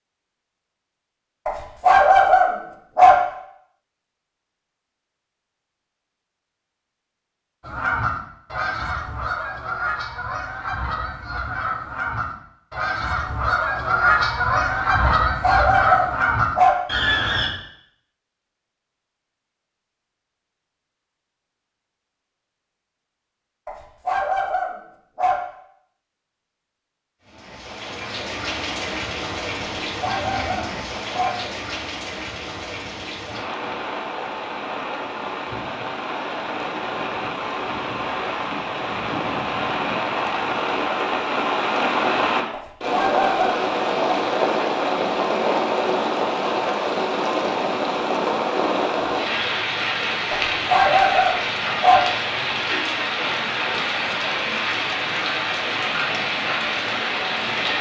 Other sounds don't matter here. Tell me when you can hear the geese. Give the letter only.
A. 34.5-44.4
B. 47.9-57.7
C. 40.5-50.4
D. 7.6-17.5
D.